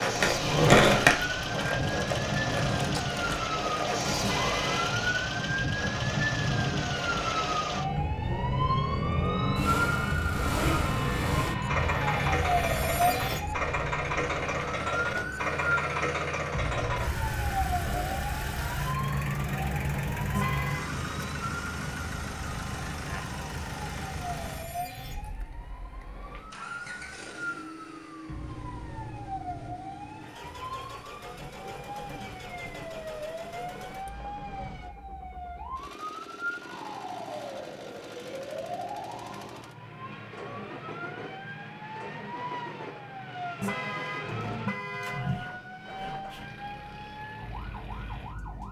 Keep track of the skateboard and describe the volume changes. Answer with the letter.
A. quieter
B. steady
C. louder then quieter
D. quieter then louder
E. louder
A.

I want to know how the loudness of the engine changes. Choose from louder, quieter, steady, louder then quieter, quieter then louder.
quieter.